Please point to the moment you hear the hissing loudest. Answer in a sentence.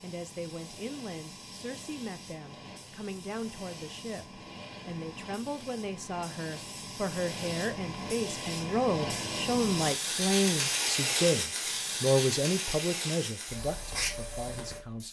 The volume of the hissing peaks at 11 seconds.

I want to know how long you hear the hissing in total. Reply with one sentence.
You can hear the hissing for 15 seconds altogether.